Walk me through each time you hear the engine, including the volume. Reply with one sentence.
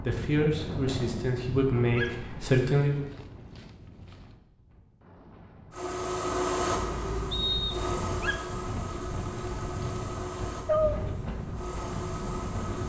The engine can be heard from 5.7 to 12.8 s, getting quieter.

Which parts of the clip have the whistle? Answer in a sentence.
You can hear the whistle from 7.3 to 7.9 s.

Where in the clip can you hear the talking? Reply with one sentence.
You can hear the talking from 0.0 to 3.0 s.